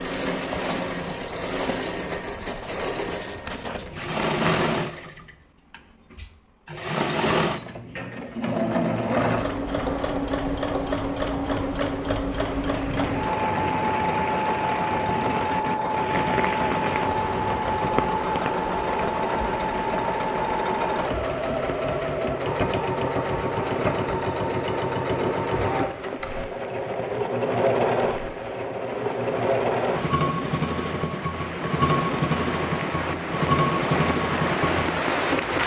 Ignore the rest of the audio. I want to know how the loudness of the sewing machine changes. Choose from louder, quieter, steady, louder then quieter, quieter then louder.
steady.